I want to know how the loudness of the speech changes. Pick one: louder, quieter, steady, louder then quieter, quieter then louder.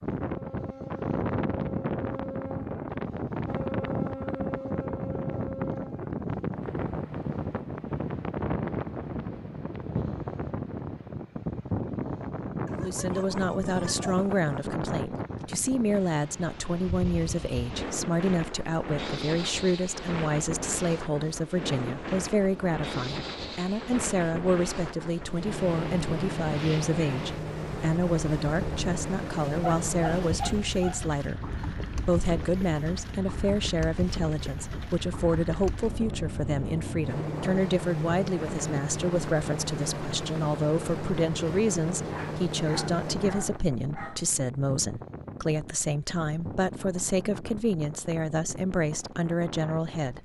steady.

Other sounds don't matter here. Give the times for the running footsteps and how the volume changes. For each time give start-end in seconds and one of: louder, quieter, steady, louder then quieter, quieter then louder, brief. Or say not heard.
not heard.